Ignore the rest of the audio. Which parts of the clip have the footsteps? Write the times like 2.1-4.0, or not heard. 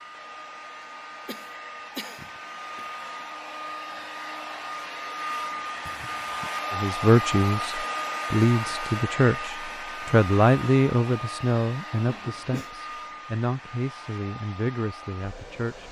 not heard.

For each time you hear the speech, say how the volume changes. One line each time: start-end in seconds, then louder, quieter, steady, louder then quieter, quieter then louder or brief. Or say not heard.
6.7-15.8 quieter.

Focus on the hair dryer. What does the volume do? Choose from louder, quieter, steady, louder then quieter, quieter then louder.
louder then quieter.